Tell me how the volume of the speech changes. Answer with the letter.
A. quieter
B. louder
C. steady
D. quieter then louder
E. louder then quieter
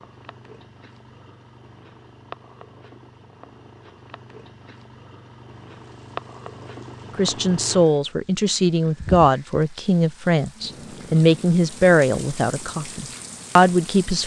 C.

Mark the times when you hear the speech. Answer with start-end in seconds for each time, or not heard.
7.2-14.2.